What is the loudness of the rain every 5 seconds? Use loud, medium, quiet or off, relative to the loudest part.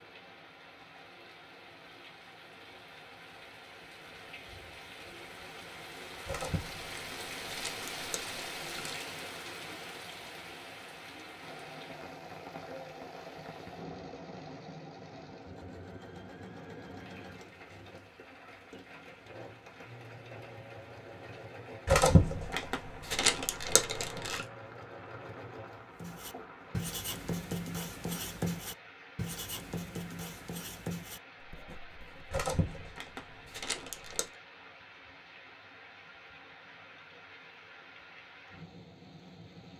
medium, loud, medium, medium, medium, medium, medium, medium.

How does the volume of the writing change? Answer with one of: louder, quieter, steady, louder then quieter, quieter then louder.
quieter.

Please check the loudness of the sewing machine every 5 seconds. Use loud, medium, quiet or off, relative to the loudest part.
off, off, loud, loud, loud, loud, off, off.